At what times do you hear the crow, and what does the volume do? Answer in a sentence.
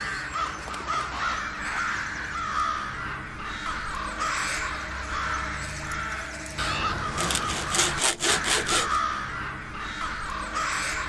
The crow can be heard from 0.0 to 11.0 s, at a steady volume.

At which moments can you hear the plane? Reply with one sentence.
The plane can't be heard in this clip.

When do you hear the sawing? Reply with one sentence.
You can hear the sawing from 7.2 to 9.0 s.